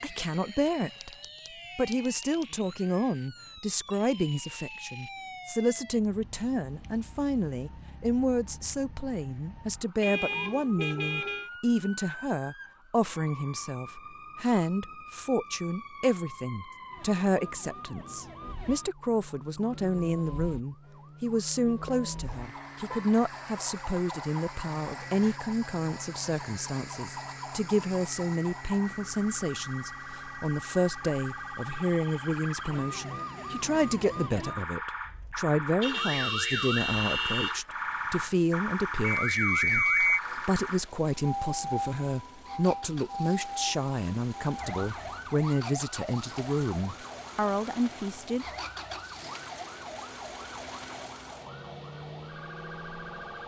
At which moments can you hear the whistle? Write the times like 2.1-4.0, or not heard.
39.0-40.2.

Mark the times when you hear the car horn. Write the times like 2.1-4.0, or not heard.
10.0-11.5, 21.9-23.1, 35.8-37.6.